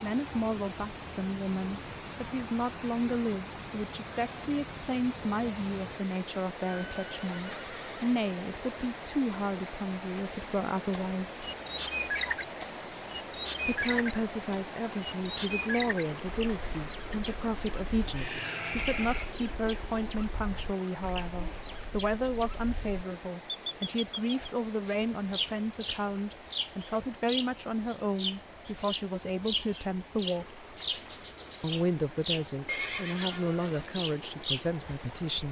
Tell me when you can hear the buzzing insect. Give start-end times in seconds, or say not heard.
not heard.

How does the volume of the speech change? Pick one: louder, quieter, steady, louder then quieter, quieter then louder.
steady.